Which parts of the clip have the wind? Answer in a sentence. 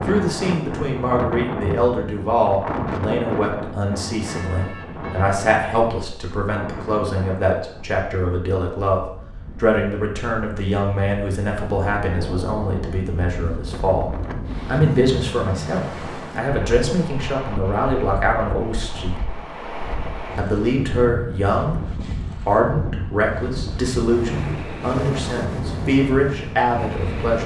You can hear the wind from 0.0 to 27.4 s.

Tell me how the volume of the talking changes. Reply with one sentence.
The volume of the talking stays about the same.